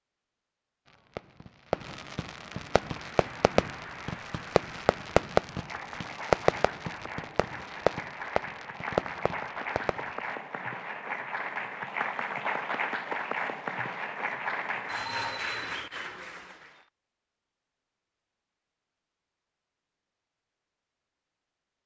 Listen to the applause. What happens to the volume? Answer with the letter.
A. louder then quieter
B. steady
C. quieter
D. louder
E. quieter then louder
D.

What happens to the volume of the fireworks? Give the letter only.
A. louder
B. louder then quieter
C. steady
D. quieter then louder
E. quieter
B.